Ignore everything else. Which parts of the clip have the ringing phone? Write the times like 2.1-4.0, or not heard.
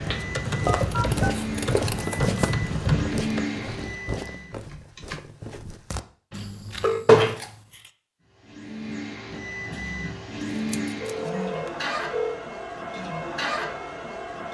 0.7-1.4, 6.3-7.0, 11.0-12.4.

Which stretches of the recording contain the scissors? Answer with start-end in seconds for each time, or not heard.
0.8-2.4, 7.0-7.9, 10.6-11.7.